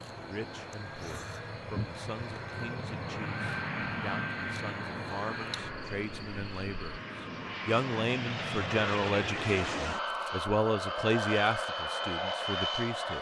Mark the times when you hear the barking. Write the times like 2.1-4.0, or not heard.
not heard.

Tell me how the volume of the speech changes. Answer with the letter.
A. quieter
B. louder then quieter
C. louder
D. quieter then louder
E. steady
C.